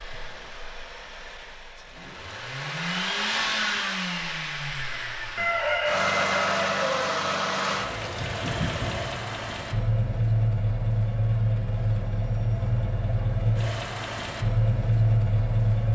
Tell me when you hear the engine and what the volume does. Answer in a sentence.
You can hear the engine from 0.0 to 15.9 s, getting louder.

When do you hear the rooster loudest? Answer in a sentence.
The volume of the rooster peaks at 6 seconds.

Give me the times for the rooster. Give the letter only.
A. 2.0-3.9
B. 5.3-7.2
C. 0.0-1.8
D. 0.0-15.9
B.